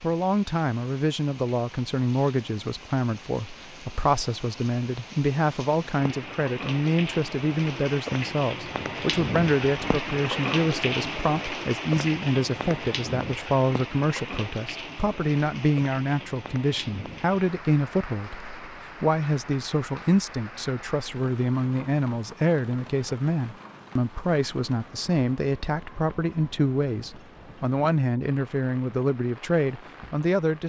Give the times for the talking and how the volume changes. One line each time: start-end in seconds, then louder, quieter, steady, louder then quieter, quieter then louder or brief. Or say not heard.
0.0-30.6 steady.